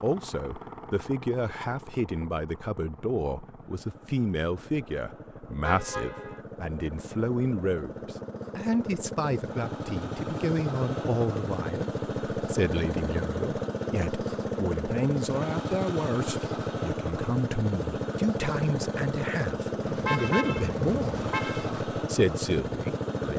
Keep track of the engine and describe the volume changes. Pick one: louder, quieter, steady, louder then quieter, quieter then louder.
louder.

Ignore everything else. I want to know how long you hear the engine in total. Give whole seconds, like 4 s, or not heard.
23 s.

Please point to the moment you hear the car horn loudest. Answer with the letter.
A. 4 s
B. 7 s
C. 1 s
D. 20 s
D.